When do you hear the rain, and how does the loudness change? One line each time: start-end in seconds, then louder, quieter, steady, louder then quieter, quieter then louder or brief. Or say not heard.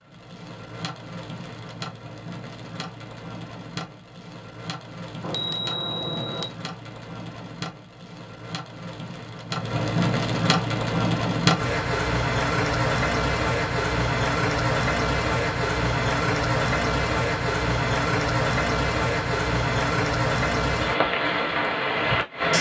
0.0-22.5 louder.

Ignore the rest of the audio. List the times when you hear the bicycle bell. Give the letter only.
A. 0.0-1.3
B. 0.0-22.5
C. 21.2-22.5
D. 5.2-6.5
D.